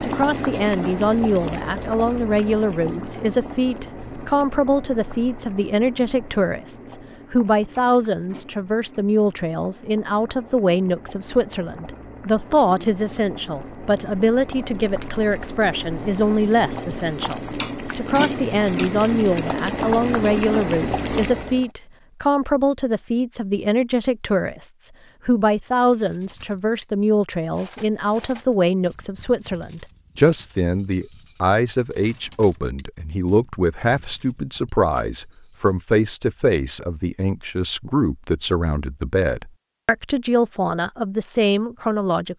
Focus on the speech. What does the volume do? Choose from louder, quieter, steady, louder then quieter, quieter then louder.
steady.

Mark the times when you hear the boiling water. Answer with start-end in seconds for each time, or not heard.
0.0-21.7.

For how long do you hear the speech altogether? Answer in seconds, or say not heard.
42 s.